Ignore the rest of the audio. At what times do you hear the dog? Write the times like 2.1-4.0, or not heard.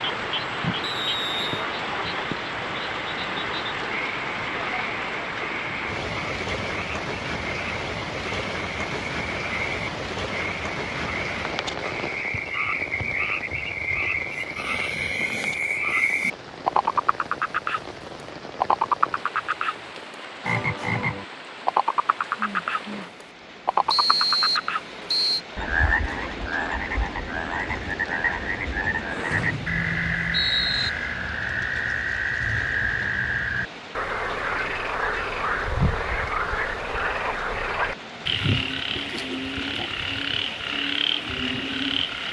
not heard.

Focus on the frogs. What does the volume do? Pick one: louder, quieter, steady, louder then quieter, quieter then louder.
louder.